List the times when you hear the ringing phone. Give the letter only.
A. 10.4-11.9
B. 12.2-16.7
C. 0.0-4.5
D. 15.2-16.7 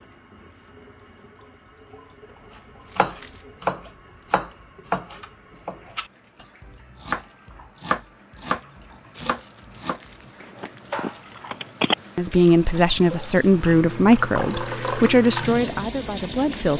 A.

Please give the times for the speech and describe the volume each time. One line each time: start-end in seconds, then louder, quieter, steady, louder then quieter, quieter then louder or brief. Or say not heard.
12.2-16.7 quieter.